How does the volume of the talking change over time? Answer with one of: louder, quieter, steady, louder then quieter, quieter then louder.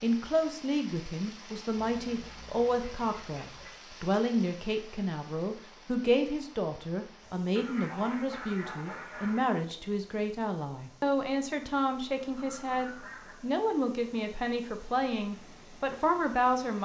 steady.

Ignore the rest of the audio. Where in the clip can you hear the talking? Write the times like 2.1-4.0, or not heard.
0.0-16.8.